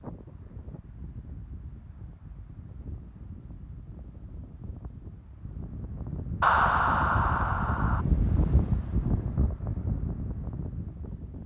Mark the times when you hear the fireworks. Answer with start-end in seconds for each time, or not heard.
not heard.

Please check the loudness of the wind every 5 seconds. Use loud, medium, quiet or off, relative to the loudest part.
quiet, loud, medium.